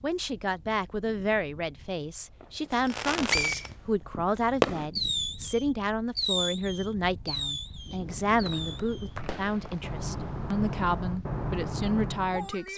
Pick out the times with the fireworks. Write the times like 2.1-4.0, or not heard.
2.4-12.5.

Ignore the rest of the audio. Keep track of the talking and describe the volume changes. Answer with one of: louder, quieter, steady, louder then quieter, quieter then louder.
steady.